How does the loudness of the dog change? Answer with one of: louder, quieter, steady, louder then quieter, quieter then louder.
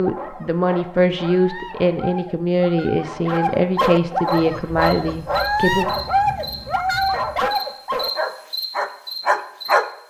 louder.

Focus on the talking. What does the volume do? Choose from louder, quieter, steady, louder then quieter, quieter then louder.
steady.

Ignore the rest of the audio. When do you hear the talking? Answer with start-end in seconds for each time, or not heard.
0.0-5.8.